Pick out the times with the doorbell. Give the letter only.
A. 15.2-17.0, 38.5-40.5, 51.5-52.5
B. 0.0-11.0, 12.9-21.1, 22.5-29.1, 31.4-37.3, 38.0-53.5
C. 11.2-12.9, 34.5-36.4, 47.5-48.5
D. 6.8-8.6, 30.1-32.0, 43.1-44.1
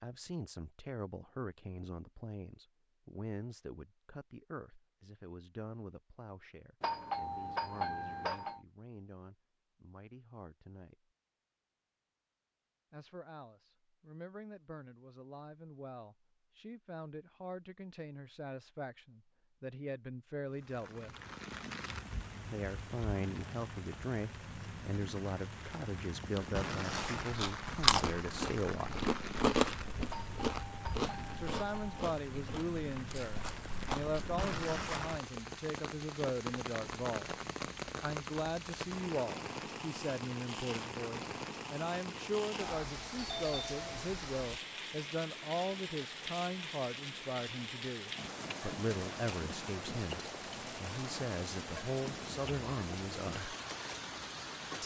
D.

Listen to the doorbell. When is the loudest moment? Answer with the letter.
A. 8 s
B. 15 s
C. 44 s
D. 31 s
A.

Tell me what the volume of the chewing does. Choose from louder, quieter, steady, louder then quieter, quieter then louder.
quieter.